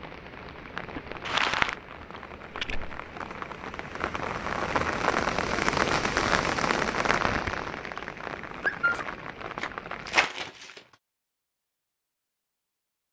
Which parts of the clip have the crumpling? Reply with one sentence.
The crumpling can be heard from 1.2 to 1.8 s and from 9.6 to 10.8 s.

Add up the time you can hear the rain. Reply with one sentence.
The rain can be heard for 10 seconds in total.